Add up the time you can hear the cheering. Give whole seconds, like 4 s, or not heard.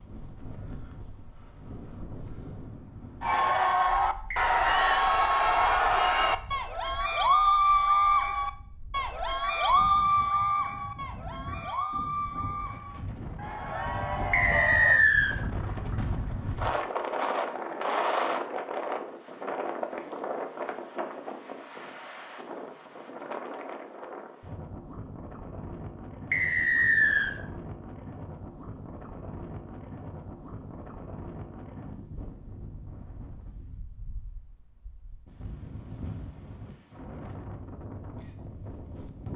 12 s.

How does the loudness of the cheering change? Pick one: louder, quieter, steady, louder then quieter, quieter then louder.
quieter.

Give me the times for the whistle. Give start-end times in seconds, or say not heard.
4.3-5.0, 14.3-15.3, 26.3-27.4.